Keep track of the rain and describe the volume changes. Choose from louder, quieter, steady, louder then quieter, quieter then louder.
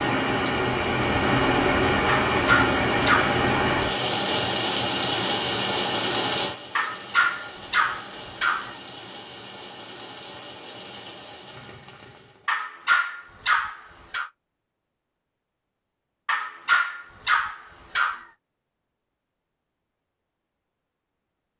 quieter.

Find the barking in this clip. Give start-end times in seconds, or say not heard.
2.0-3.4, 6.8-8.8, 12.4-14.3, 16.2-18.2.